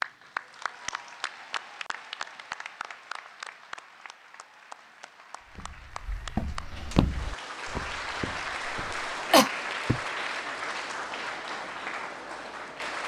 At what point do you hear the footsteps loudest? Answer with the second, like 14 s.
7 s.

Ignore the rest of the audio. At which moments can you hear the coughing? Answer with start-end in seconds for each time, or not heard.
8.7-10.0.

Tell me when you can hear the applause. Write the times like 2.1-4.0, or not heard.
0.0-13.0.